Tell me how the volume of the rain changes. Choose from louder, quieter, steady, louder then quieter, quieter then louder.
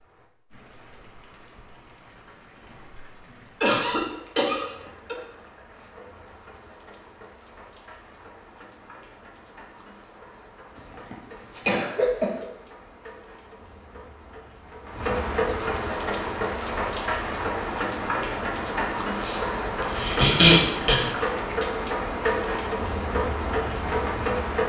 louder.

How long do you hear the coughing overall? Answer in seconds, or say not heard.
5 s.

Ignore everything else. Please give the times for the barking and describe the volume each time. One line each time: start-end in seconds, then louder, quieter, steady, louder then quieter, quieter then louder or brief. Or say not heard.
not heard.